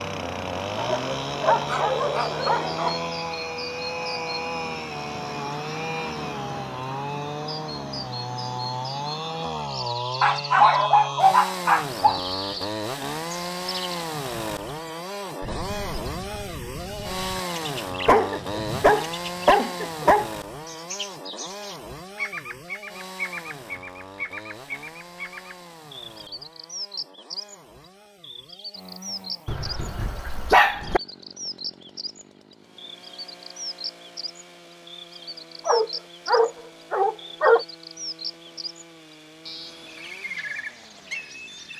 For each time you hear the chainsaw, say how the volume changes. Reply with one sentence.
You can hear the chainsaw from 0.0 to 41.7 s, getting quieter.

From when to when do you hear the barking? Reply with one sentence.
The barking can be heard from 0.8 to 3.0 s, from 10.2 to 12.2 s, from 18.1 to 20.3 s, from 29.4 to 31.0 s and from 35.6 to 37.6 s.